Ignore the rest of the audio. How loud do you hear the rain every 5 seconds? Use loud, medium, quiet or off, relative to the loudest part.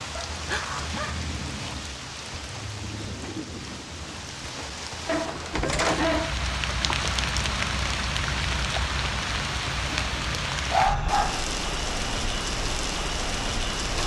medium, loud, loud.